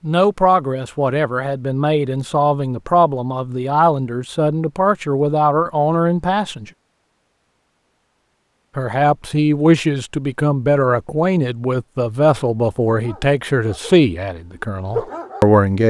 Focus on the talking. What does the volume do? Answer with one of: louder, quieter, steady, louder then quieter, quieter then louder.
steady.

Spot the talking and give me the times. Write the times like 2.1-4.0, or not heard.
0.0-6.7, 8.8-15.8.